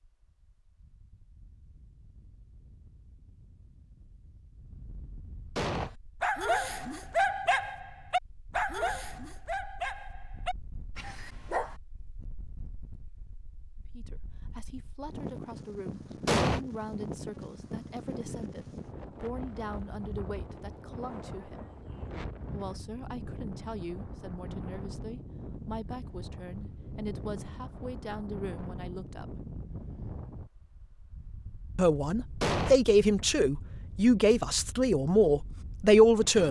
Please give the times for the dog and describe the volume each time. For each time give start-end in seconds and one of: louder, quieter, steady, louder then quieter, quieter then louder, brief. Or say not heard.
5.7-11.8 quieter.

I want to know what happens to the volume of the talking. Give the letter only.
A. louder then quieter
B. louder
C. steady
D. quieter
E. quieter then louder
B.